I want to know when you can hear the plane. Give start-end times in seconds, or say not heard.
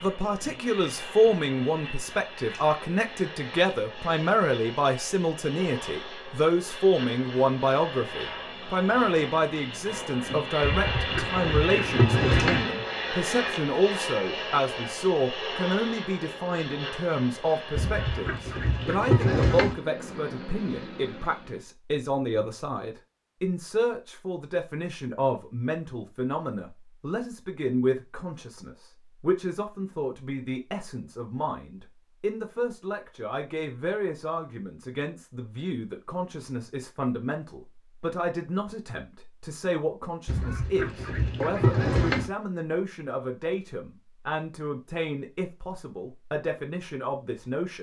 0.0-21.6.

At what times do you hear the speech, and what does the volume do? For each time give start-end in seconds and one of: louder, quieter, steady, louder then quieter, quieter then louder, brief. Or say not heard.
0.0-47.7 quieter.